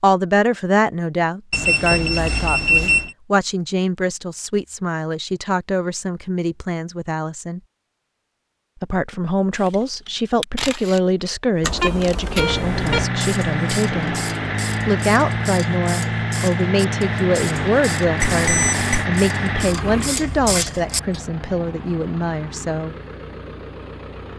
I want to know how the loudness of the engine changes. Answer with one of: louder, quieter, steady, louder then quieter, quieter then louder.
quieter.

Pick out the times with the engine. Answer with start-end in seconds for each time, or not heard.
12.3-24.3.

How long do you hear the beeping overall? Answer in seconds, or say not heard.
4 s.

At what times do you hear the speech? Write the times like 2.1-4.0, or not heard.
0.0-7.6, 8.8-14.2, 14.8-22.9.